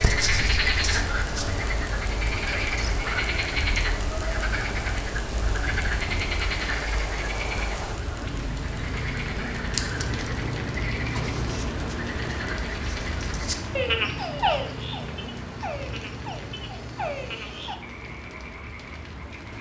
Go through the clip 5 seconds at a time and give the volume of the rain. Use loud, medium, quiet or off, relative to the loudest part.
medium, loud, loud, medium.